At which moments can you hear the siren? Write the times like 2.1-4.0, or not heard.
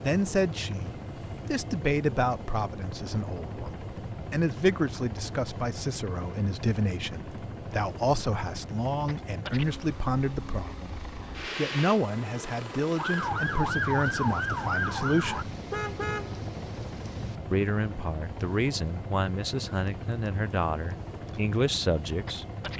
12.9-15.4.